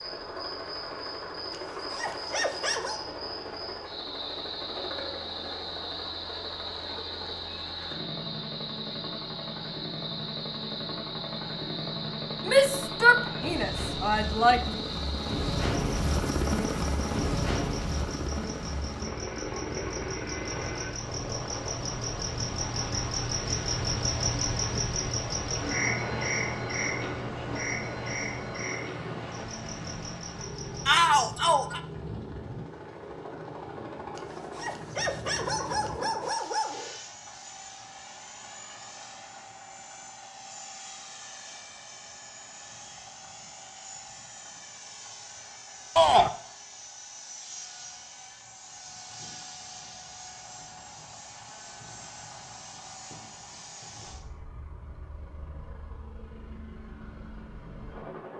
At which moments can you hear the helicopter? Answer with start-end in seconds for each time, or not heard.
0.0-58.3.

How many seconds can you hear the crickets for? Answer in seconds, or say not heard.
31 s.